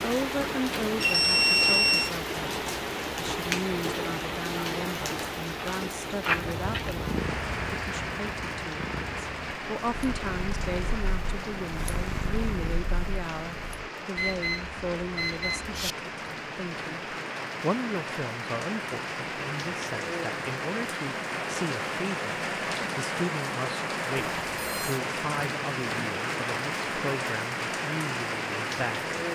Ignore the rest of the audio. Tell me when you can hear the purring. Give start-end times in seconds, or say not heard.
6.2-13.9.